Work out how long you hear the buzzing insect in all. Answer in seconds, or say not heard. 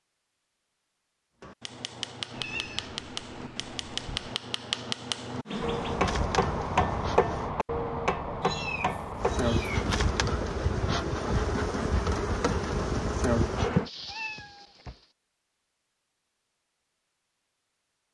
7 s.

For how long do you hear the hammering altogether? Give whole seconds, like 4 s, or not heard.
8 s.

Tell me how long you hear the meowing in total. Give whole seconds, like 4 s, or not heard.
5 s.